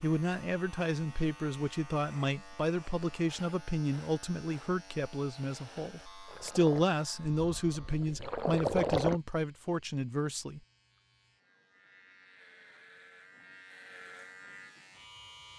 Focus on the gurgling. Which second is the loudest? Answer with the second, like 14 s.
9 s.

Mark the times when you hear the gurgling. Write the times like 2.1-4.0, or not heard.
6.2-9.2.